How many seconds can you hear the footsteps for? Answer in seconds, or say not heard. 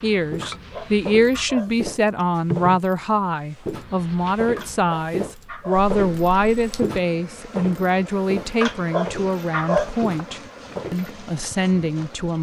11 s.